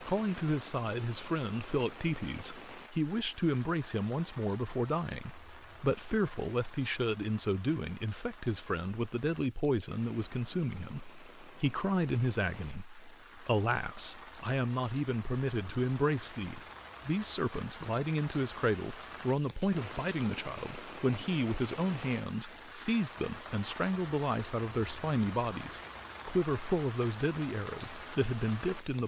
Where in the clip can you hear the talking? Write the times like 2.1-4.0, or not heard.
0.0-29.0.